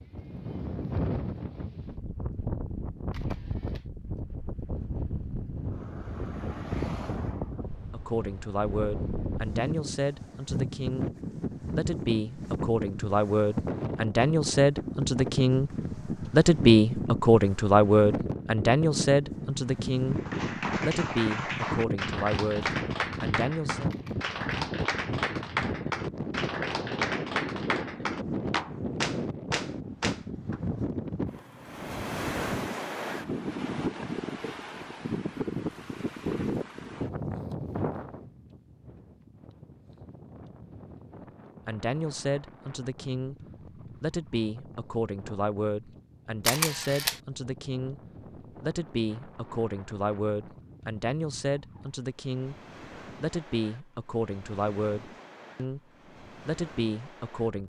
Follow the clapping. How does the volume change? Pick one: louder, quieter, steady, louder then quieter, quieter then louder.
steady.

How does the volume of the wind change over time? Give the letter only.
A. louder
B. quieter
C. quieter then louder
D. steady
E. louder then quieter
B.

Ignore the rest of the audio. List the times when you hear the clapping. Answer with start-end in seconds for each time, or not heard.
20.1-30.6.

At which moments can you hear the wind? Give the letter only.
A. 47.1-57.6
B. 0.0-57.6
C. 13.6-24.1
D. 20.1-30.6
B.